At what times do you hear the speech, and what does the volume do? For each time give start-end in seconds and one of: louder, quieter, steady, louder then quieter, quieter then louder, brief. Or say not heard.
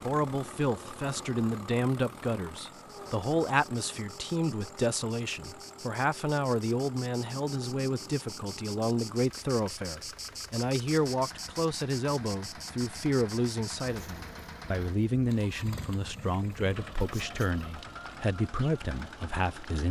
0.0-19.8 steady.